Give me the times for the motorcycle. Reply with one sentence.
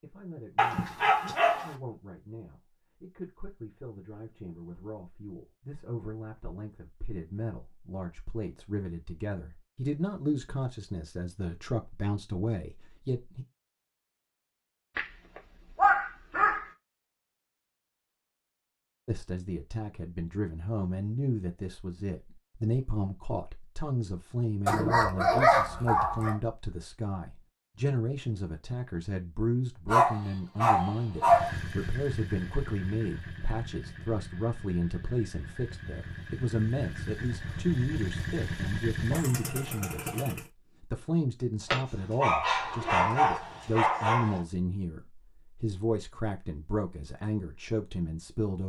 You can hear the motorcycle from 31.2 to 40.5 s.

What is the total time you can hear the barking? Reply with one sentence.
You can hear the barking for 9 seconds altogether.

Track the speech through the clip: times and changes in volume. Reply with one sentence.
The speech can be heard from 0.0 to 13.4 s, getting louder; and from 19.1 to 48.6 s, at a steady volume.